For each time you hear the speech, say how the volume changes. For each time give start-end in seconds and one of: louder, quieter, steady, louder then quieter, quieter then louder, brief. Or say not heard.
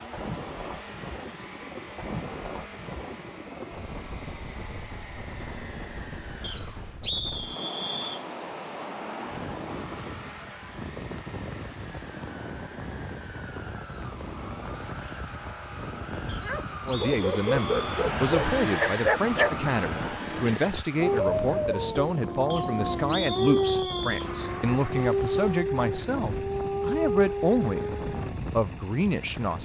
16.9-27.9 steady
28.5-29.6 brief.